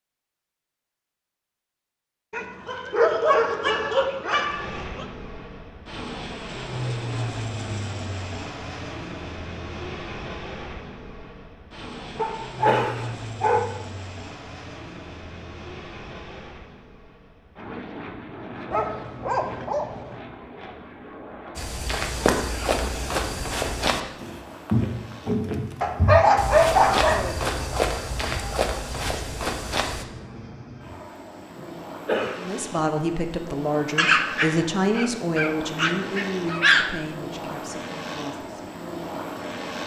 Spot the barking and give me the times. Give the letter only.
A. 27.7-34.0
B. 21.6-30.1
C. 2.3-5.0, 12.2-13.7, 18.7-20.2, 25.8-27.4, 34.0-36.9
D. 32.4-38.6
C.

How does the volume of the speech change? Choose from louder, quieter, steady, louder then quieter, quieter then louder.
quieter.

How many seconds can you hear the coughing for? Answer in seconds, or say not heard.
2 s.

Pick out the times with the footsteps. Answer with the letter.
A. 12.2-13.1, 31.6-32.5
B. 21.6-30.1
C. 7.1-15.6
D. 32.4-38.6
B.